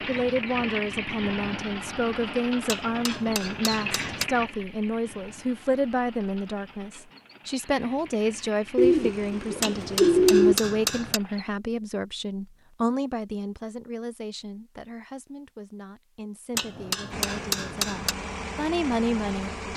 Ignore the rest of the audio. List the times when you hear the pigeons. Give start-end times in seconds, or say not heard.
8.8-10.6.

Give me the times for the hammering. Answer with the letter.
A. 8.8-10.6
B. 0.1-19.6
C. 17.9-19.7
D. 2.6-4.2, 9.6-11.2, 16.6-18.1
D.